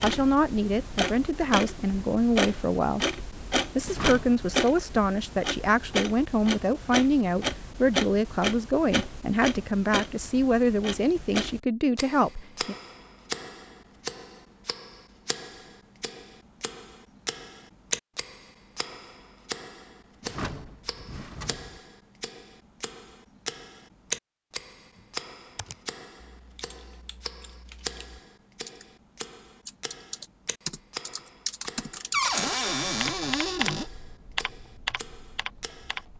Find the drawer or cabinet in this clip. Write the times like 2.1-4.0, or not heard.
3.8-4.4, 20.2-21.8, 32.1-33.9.